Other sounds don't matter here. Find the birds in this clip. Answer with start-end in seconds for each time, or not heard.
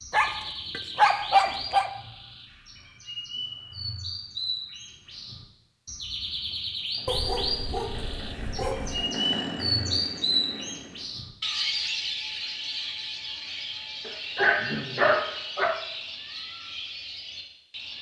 0.0-17.9.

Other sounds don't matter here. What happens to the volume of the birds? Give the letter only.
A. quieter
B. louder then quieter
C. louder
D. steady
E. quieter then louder
B.